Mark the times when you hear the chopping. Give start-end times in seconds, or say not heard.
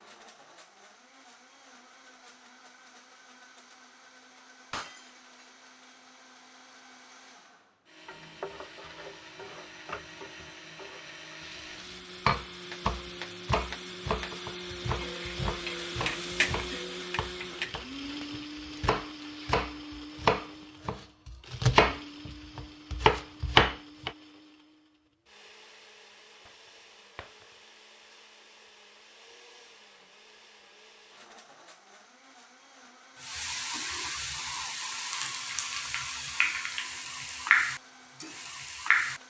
12.2-24.1.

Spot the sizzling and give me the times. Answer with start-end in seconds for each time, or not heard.
8.1-19.5, 33.2-39.2.